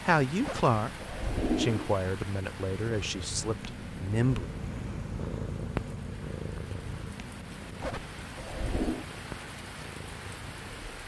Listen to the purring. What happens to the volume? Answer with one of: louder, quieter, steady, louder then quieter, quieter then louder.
louder then quieter.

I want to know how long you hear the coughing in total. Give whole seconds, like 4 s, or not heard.
3 s.